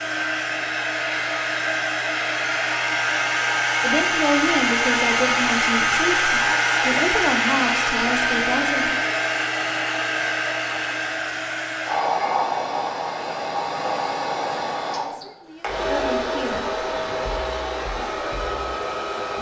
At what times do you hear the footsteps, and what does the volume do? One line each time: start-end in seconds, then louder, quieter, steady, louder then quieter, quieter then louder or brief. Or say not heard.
not heard.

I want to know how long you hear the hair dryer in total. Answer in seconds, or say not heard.
19 s.